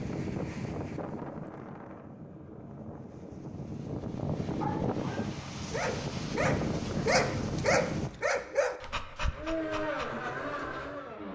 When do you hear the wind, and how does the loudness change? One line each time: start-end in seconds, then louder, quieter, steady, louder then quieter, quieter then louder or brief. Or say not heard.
0.0-8.1 quieter then louder.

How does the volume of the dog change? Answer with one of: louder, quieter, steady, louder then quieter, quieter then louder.
louder then quieter.